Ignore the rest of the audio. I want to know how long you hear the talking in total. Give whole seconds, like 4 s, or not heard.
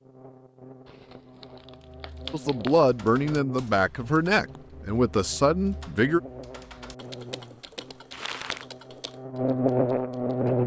4 s.